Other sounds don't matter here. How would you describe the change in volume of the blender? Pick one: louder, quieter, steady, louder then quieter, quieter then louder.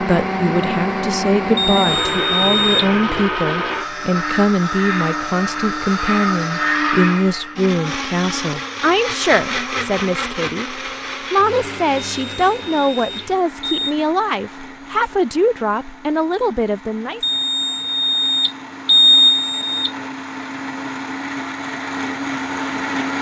quieter then louder.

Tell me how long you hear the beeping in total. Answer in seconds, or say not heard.
6 s.